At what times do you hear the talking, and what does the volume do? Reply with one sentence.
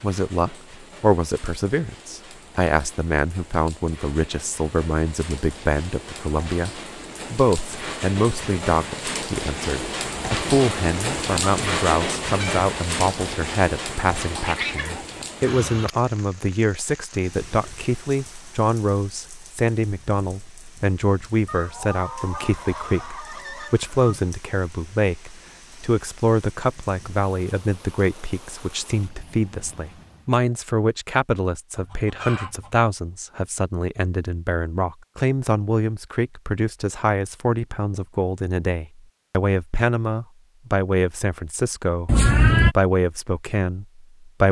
You can hear the talking from 0.0 to 44.4 s, at a steady volume.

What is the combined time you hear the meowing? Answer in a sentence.
You can hear the meowing for 2 seconds altogether.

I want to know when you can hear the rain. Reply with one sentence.
The rain can be heard from 0.0 to 30.4 s.